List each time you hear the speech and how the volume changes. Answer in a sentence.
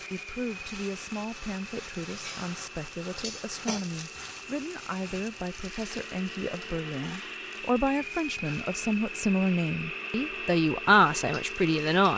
The speech can be heard from 0.1 to 12.1 s, getting louder.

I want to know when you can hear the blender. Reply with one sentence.
The blender can be heard from 0.0 to 12.1 s.